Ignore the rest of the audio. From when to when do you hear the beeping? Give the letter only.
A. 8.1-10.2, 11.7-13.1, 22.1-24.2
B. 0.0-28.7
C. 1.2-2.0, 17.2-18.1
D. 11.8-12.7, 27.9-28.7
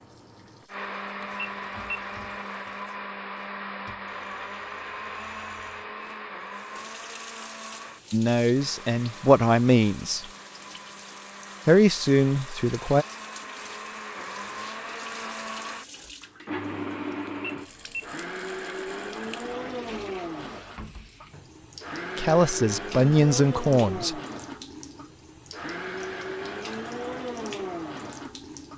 C.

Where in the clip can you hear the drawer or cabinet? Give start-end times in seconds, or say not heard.
not heard.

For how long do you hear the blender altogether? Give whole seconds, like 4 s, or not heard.
29 s.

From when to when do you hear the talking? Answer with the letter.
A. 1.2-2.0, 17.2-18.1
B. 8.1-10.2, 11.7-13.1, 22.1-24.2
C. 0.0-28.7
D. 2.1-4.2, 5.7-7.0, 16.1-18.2
B.